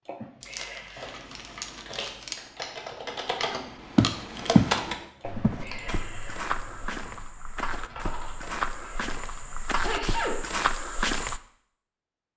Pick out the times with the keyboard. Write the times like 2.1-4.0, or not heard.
0.9-9.5.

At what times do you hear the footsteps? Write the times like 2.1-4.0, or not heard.
3.5-11.4.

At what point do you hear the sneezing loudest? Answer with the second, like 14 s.
10 s.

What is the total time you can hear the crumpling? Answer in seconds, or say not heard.
2 s.